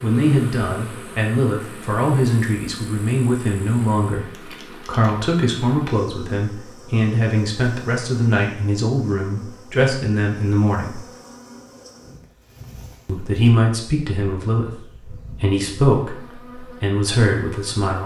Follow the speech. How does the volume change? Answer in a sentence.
The loudness of the speech stays about the same.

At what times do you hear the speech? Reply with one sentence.
The speech can be heard from 0.0 to 11.0 s and from 13.1 to 18.0 s.